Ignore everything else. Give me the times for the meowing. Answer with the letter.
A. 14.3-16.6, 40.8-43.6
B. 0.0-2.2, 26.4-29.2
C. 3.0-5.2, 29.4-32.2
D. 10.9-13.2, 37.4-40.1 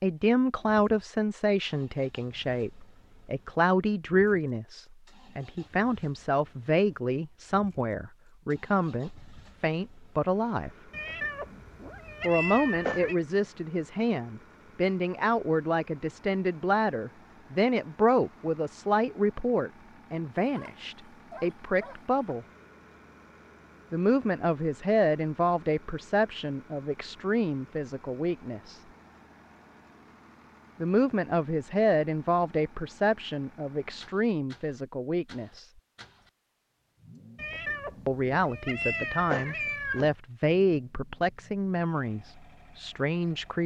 D.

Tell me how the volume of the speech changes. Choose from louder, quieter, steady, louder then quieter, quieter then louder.
steady.